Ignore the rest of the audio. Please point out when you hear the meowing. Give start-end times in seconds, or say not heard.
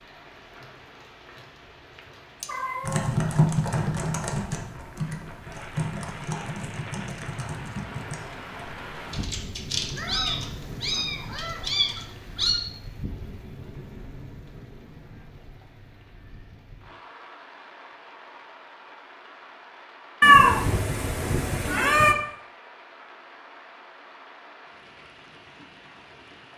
2.4-3.1, 9.9-12.6, 20.2-22.1.